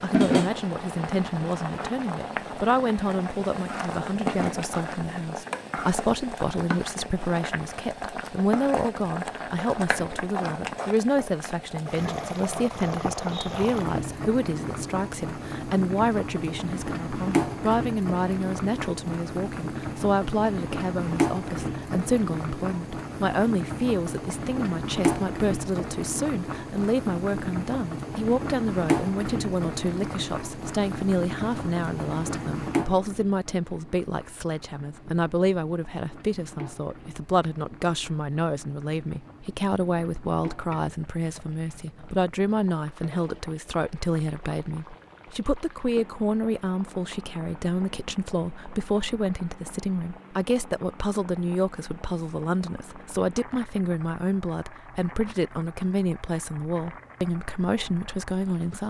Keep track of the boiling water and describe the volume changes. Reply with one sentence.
The volume of the boiling water goes down.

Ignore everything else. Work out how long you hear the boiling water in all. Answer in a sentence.
You can hear the boiling water for 59 seconds altogether.